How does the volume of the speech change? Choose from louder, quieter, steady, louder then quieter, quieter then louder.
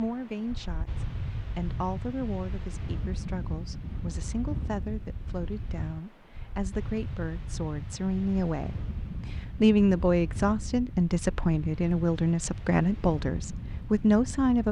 louder.